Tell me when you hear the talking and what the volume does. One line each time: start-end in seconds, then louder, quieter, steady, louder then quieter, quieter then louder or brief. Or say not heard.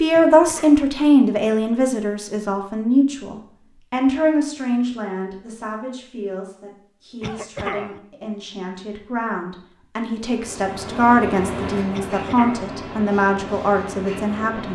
0.0-14.7 quieter then louder.